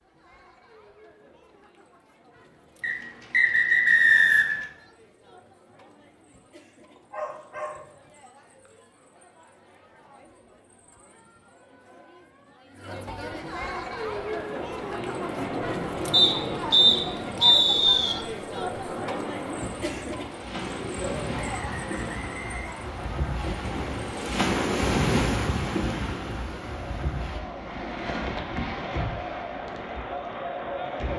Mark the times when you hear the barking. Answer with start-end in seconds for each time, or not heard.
7.0-8.0.